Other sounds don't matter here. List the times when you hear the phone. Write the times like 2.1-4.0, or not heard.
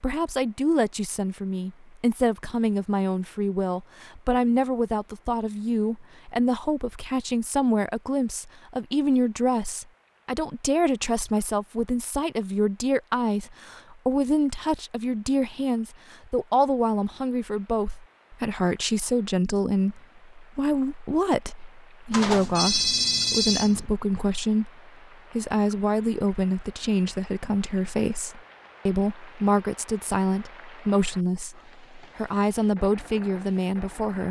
22.1-23.9.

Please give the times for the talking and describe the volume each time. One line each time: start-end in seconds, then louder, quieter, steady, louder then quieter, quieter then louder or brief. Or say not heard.
0.0-34.2 steady.